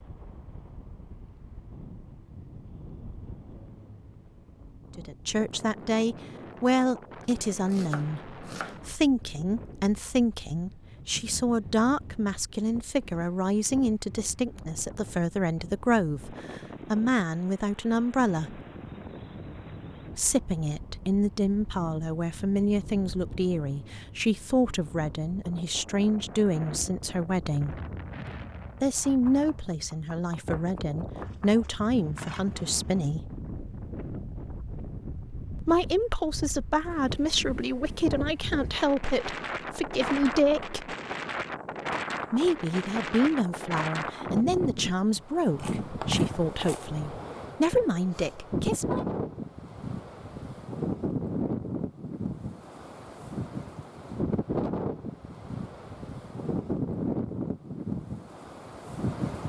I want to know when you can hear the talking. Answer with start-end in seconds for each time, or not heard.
5.0-18.6, 20.1-27.8, 28.8-33.2, 35.6-41.0, 42.3-49.0.